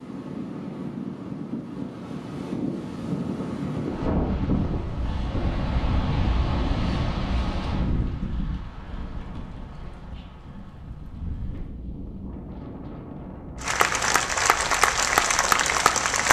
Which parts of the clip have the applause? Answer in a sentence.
The applause can be heard from 13.6 to 16.2 s.